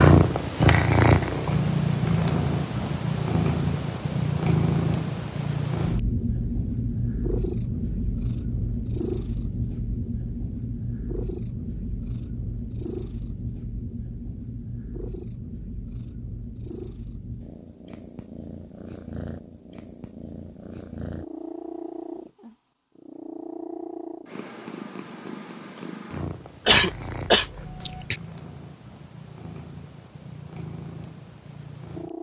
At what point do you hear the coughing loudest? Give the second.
27 s.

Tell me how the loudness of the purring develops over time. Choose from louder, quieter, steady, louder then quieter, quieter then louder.
quieter.